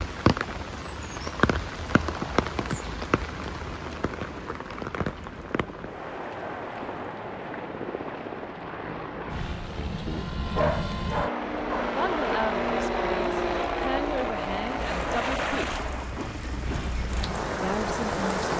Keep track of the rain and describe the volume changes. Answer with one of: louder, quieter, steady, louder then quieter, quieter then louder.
quieter then louder.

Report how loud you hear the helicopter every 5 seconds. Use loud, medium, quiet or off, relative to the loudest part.
quiet, medium, loud, medium.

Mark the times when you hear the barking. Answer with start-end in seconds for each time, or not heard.
10.6-11.9.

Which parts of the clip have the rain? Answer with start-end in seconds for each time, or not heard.
0.0-18.5.